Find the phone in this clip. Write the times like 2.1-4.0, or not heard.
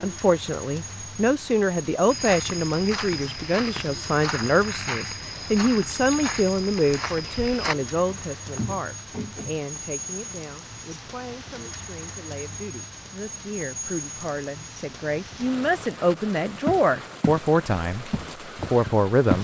not heard.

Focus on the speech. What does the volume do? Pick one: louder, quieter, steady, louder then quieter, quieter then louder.
quieter then louder.